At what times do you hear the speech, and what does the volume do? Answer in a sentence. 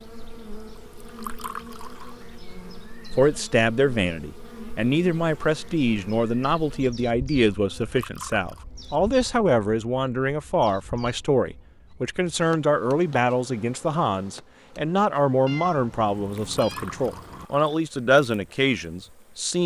You can hear the speech from 3.1 to 19.6 s, at a steady volume.